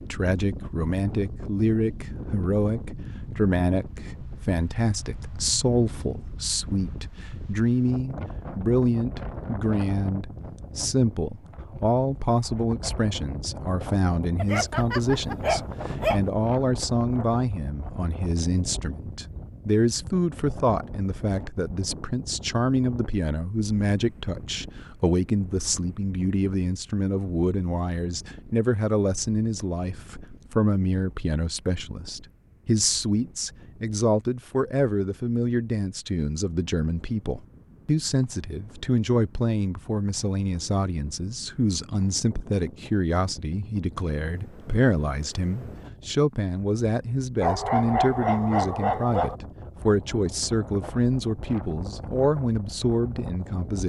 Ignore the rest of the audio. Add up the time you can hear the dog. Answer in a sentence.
The dog can be heard for 4 seconds in total.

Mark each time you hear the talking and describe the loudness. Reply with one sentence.
You can hear the talking from 0.0 to 53.8 s, at a steady volume.